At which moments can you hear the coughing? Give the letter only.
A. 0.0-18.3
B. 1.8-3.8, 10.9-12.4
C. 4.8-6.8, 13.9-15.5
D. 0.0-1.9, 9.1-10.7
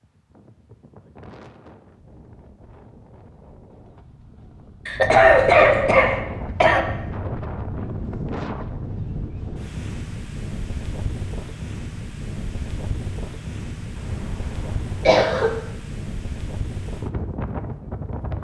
C.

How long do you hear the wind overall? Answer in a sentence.
The wind can be heard for 18 seconds in total.